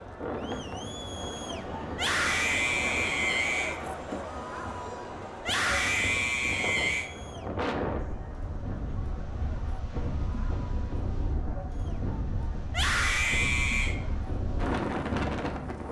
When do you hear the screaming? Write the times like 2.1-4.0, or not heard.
1.9-3.8, 5.4-7.1, 12.7-13.9.